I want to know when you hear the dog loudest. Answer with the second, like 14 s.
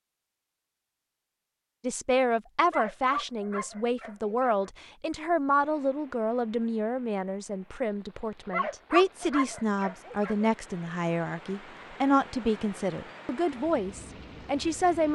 9 s.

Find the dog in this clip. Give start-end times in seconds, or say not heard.
2.7-4.7, 8.5-10.5.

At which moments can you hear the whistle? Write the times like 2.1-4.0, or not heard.
not heard.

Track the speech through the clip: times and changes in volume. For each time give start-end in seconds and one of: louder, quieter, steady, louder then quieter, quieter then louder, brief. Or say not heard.
1.8-15.0 steady.